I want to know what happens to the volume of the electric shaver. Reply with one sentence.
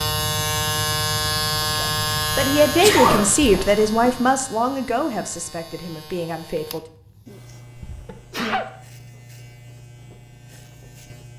The loudness of the electric shaver goes down.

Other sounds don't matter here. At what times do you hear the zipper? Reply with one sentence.
You can hear the zipper from 2.8 to 4.2 s.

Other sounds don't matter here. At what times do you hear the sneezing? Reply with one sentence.
You can hear the sneezing from 2.6 to 3.2 s and from 7.8 to 8.7 s.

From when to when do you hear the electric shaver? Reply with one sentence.
The electric shaver can be heard from 0.0 to 11.3 s.